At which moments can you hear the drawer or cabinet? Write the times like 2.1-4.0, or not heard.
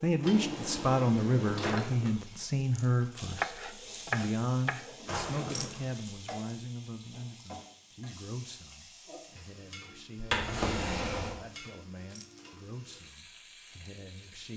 0.2-2.1, 5.0-5.8, 10.2-11.3.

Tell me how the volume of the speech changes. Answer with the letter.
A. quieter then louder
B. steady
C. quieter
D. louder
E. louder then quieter
C.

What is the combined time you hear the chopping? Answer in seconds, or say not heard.
2 s.